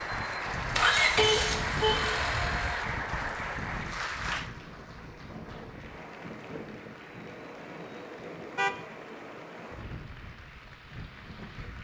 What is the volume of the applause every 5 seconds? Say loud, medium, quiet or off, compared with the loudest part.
loud, quiet, quiet.